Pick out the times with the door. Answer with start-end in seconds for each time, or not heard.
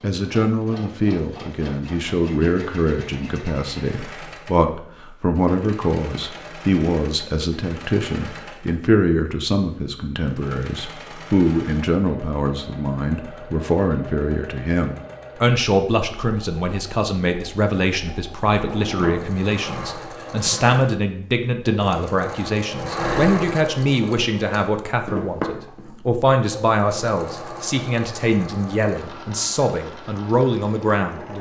18.6-19.4.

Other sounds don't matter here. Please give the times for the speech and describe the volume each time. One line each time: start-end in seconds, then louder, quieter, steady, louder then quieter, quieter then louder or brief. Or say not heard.
0.0-31.3 steady.